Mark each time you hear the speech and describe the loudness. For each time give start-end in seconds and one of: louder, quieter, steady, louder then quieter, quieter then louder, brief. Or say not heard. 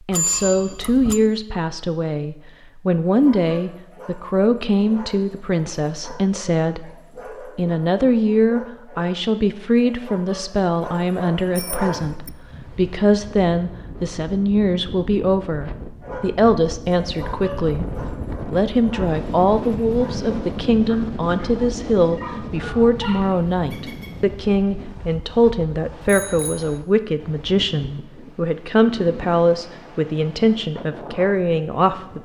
0.1-32.2 steady.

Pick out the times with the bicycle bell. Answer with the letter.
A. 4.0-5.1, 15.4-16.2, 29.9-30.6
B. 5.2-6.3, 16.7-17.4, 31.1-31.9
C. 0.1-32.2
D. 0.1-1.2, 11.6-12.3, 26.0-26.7
D.